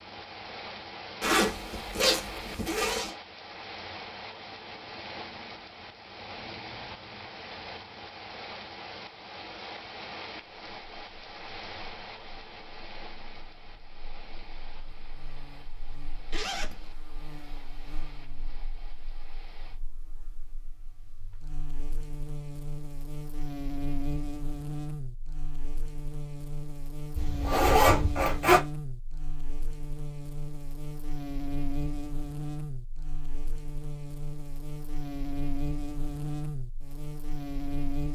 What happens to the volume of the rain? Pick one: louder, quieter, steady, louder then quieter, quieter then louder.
quieter.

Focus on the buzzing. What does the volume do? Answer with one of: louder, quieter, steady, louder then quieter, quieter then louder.
louder.